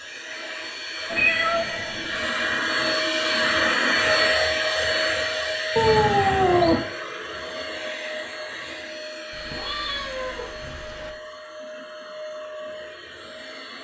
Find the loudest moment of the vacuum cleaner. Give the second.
4 s.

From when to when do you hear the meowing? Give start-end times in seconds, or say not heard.
1.1-2.1, 5.8-6.8, 9.3-11.1.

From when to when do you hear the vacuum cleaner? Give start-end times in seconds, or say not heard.
0.0-13.7.